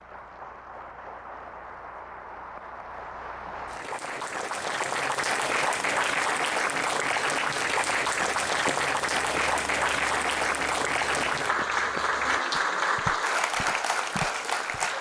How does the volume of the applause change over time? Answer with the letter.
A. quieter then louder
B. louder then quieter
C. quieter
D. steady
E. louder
E.